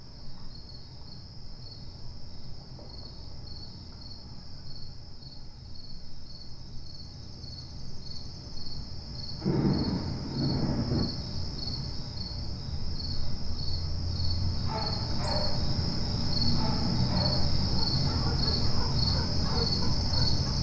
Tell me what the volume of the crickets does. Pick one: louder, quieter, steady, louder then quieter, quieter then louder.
louder.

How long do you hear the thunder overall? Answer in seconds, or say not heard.
2 s.